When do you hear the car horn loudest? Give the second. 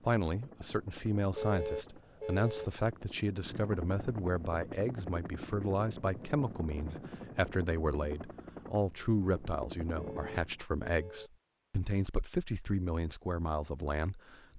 2 s.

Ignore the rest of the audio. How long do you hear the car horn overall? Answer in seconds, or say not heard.
3 s.